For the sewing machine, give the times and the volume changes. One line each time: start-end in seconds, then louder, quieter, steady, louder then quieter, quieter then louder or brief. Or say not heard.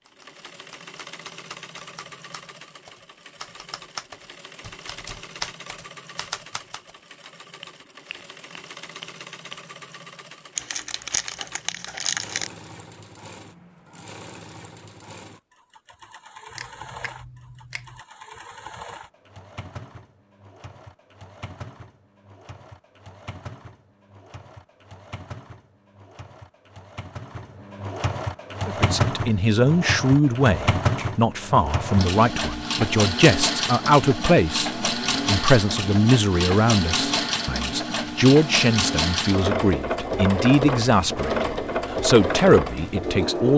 0.0-43.5 louder.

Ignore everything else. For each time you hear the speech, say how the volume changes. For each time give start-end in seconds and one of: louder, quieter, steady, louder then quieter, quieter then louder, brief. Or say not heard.
28.6-43.5 steady.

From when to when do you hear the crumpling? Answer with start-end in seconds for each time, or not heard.
10.6-12.5.